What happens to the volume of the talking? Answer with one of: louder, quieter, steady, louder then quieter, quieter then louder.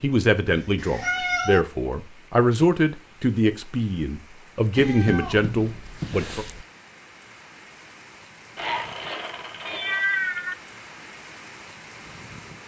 steady.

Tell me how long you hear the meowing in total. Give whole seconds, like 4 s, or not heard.
5 s.